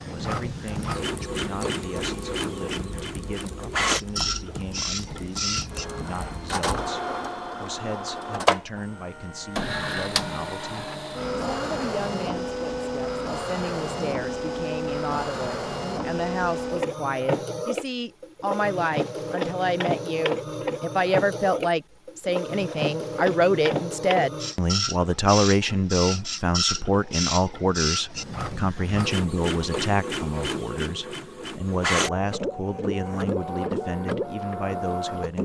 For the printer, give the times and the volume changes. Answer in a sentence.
You can hear the printer from 0.0 to 35.3 s, at a steady volume.